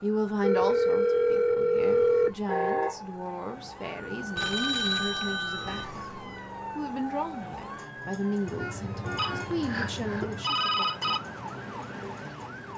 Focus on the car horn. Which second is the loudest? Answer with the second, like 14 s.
3 s.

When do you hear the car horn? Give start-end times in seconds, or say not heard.
2.5-3.0, 8.4-10.4.